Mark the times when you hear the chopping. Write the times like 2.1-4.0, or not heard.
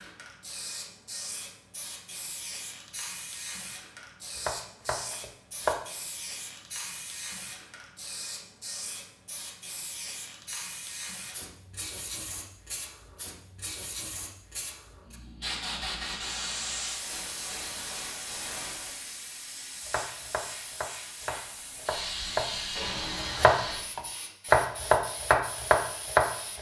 4.3-5.8, 19.9-26.5.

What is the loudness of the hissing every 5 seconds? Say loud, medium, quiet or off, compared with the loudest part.
medium, medium, medium, loud, loud, medium.